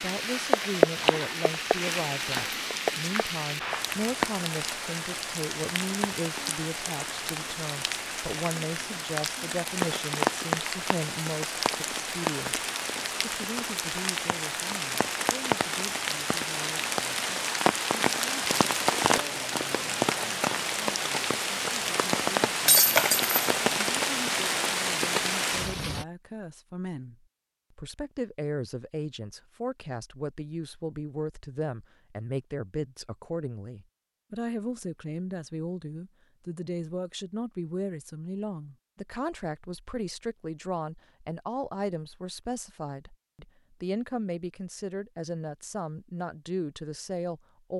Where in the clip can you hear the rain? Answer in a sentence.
The rain can be heard from 0.0 to 26.1 s.